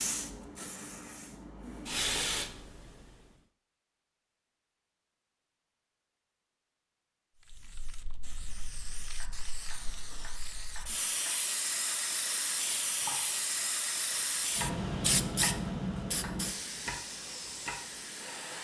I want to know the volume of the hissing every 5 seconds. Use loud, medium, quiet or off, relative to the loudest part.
loud, quiet, loud, loud.